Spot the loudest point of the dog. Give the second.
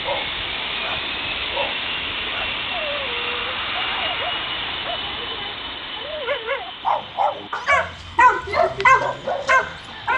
9 s.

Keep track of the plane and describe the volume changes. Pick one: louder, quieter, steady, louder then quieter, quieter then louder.
quieter.